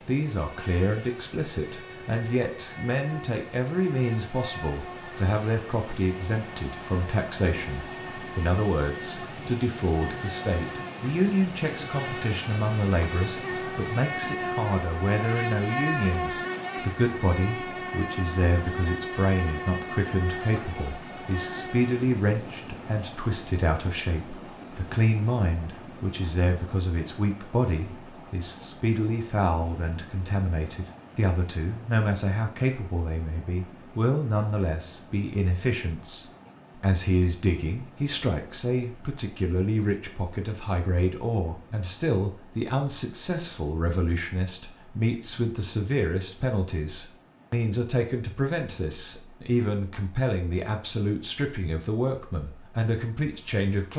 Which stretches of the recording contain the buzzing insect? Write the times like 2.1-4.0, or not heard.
0.2-21.9.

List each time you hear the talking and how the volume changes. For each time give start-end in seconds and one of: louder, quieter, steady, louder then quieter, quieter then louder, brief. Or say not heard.
0.1-53.9 steady.